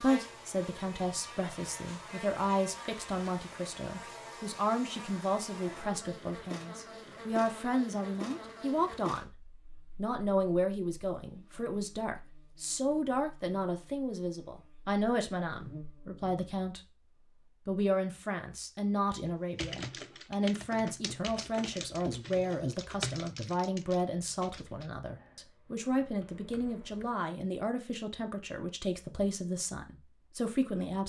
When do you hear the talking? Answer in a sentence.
You can hear the talking from 0.0 to 9.3 s and from 9.9 to 31.0 s.